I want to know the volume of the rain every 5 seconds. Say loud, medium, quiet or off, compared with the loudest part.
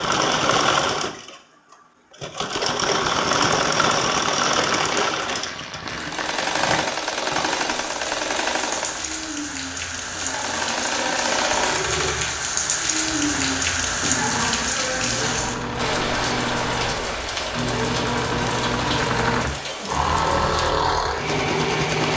off, medium, loud, loud, medium.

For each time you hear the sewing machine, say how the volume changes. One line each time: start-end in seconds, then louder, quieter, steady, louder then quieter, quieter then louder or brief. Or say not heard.
0.0-22.1 quieter then louder.